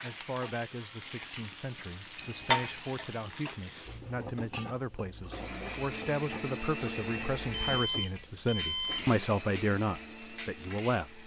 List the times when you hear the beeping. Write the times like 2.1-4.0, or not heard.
2.1-2.8, 7.5-9.2.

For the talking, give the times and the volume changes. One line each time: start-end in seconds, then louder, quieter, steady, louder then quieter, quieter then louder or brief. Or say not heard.
0.0-11.2 louder.